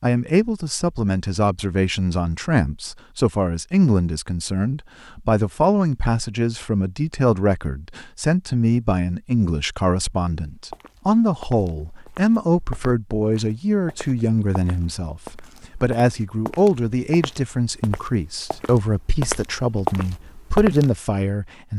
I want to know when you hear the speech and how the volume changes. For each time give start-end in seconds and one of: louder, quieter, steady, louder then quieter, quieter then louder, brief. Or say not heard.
0.0-21.7 steady.